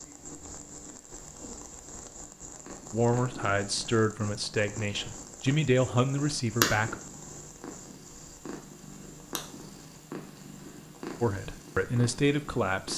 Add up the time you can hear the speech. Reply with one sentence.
The speech can be heard for 6 seconds in total.